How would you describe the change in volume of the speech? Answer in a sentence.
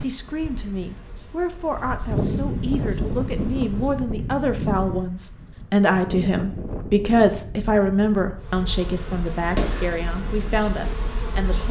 The loudness of the speech goes up, then down.